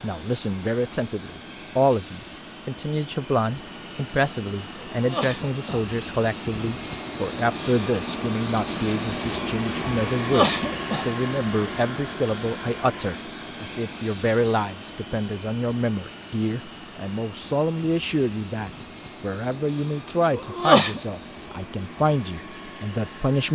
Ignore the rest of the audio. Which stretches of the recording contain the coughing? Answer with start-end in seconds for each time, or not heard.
4.9-5.8, 10.2-11.1, 20.3-21.0.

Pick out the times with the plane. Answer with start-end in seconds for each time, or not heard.
0.0-23.4.